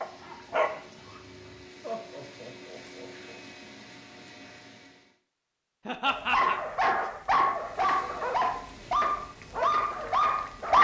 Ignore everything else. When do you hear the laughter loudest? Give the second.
6 s.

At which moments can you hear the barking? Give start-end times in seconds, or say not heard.
0.0-1.6, 6.0-10.7.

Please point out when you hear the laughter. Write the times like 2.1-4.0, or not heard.
1.8-3.4, 5.8-6.6.